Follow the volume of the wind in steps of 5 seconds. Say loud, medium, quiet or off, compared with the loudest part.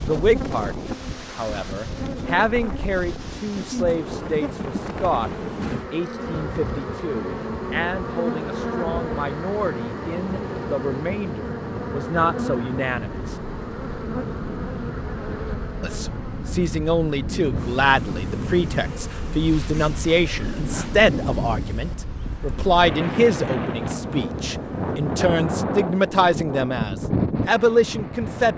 medium, medium, medium, medium, loud, loud.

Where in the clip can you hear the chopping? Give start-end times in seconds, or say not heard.
not heard.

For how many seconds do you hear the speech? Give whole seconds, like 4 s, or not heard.
26 s.